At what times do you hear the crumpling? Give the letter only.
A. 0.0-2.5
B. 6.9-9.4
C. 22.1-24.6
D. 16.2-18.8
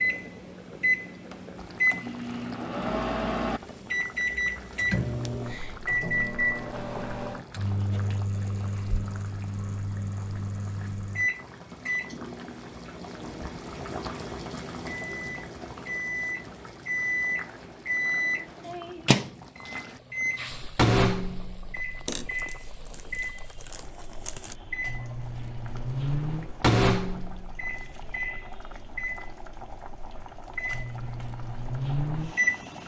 C.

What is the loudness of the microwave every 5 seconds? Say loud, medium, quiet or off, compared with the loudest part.
loud, loud, medium, loud, loud, loud, loud.